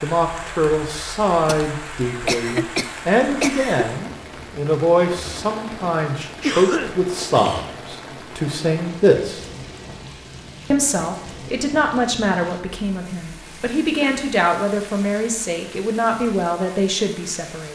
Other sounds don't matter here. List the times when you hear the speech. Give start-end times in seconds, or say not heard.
0.0-9.4, 10.7-17.7.